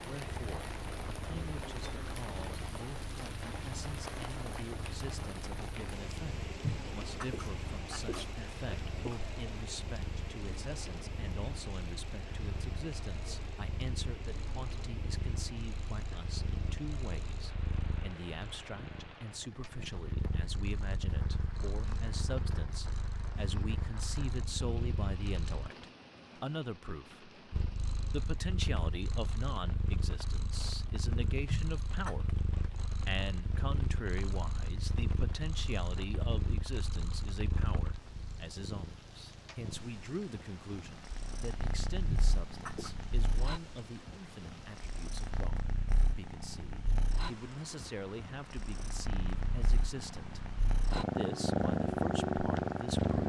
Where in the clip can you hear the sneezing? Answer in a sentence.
You can hear the sneezing from 6.6 to 9.2 s, from 31.5 to 32.2 s and from 42.0 to 42.9 s.